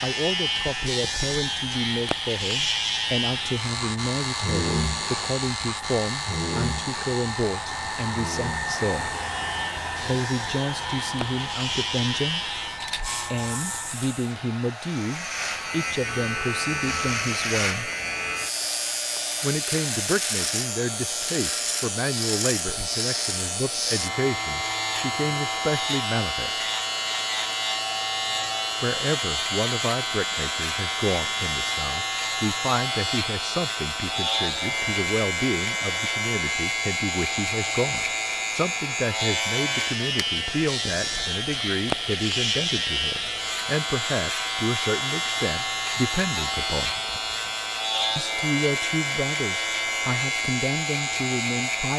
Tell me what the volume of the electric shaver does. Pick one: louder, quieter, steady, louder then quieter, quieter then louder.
steady.